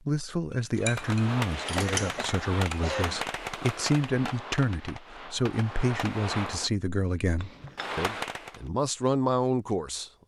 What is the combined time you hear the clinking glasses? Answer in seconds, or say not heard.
3 s.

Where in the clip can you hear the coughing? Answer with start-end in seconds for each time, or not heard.
1.8-3.2.